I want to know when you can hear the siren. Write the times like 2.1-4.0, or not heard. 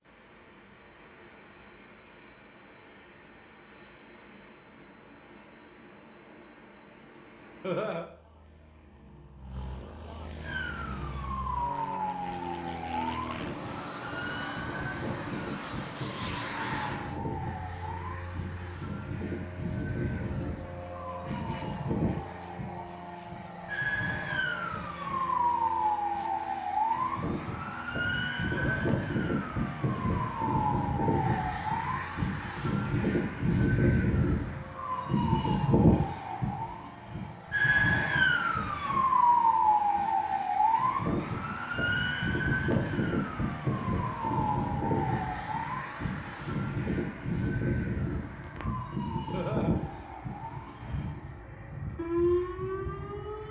10.4-53.4.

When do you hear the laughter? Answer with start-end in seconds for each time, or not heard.
7.6-8.1, 28.5-28.9, 49.3-49.8.